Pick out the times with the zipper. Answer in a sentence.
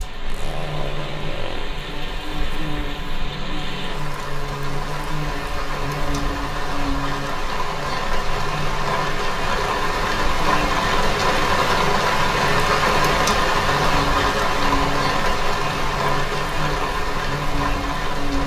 You can hear the zipper from 0.2 to 1.7 s.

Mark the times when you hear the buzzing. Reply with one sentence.
The buzzing can be heard from 0.0 to 18.4 s.